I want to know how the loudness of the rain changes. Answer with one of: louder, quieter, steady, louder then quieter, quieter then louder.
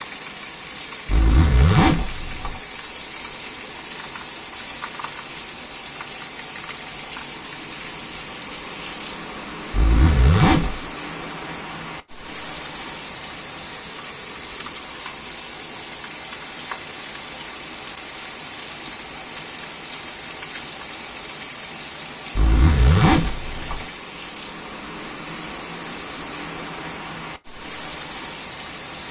steady.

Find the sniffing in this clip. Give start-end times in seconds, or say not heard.
not heard.